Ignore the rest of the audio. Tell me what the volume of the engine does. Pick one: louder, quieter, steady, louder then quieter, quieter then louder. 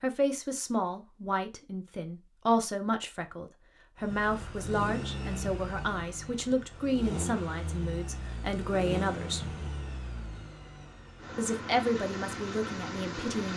quieter then louder.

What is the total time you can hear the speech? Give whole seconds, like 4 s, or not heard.
12 s.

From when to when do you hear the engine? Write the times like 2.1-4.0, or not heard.
4.0-13.5.